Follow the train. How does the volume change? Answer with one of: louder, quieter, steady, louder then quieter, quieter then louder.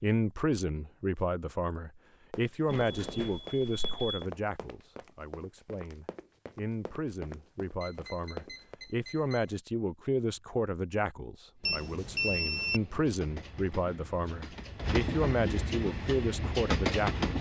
louder.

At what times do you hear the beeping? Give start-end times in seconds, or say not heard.
2.6-4.2, 7.8-9.6, 11.6-12.8.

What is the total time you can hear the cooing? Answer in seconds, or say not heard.
not heard.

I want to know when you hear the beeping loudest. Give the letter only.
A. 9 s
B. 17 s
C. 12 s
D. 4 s
C.